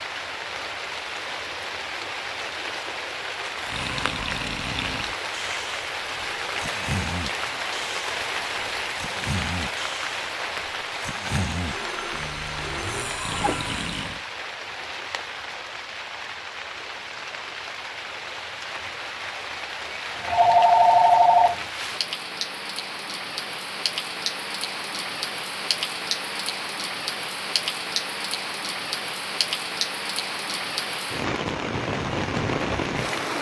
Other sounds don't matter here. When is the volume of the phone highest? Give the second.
21 s.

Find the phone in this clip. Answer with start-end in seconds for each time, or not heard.
11.7-13.7, 20.1-21.6.